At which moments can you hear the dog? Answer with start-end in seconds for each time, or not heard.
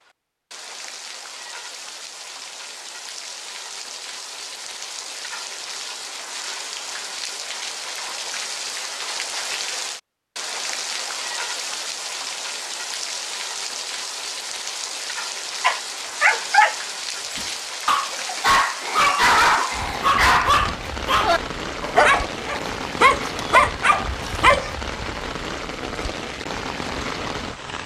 15.6-24.8.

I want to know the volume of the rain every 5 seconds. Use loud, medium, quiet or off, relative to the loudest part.
medium, loud, loud, loud, loud, loud.